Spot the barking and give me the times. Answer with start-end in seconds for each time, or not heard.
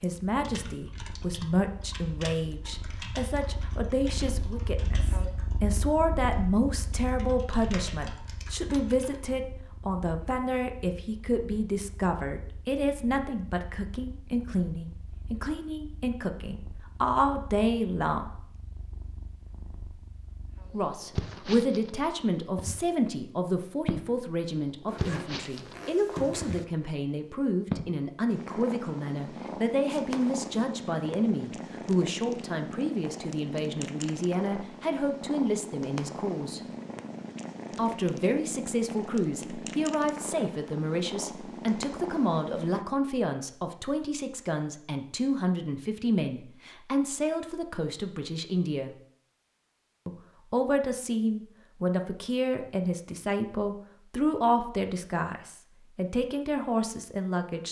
not heard.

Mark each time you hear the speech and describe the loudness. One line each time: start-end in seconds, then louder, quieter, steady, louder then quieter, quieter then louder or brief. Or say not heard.
0.0-18.2 steady
20.7-36.6 steady
37.8-49.0 steady
50.0-57.6 steady.